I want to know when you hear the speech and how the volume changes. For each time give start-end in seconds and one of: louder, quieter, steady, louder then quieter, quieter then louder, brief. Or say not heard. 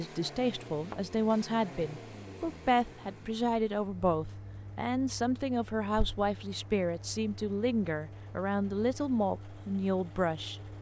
0.0-10.6 steady.